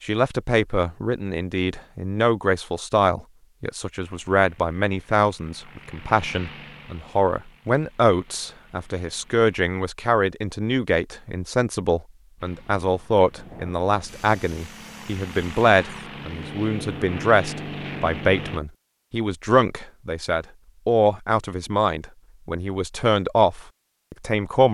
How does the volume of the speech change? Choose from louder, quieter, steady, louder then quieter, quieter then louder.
steady.